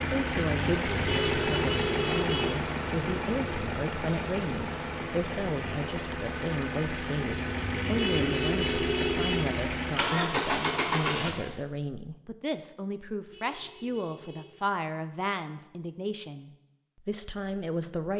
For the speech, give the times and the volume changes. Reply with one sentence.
The speech can be heard from 0.0 to 18.1 s, at a steady volume.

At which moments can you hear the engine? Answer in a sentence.
The engine can be heard from 0.0 to 11.6 s.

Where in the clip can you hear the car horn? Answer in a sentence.
The car horn can be heard from 1.1 to 2.5 s, from 8.0 to 9.4 s and from 13.2 to 14.7 s.